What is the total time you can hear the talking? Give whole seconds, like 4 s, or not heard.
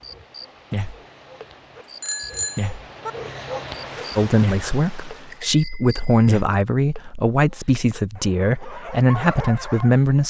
6 s.